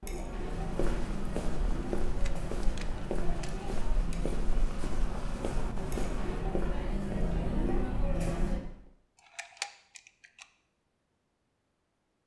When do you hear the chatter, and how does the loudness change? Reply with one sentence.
You can hear the chatter from 0.0 to 8.7 s, getting louder.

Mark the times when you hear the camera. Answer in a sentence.
You can hear the camera from 2.0 to 3.6 s and from 9.2 to 10.4 s.